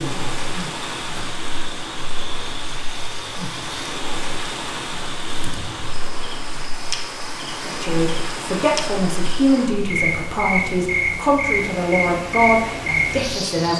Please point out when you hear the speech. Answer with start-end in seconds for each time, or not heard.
7.6-13.7.